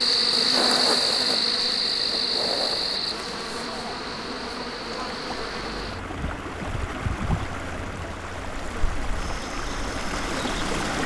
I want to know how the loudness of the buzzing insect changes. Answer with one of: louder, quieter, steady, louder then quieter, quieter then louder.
quieter.